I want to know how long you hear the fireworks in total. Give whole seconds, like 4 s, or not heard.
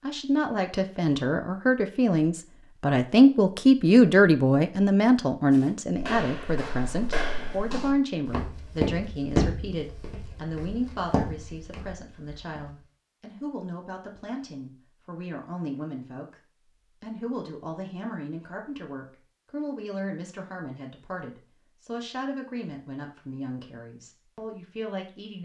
not heard.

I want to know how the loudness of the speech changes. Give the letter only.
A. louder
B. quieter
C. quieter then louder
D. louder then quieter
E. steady
B.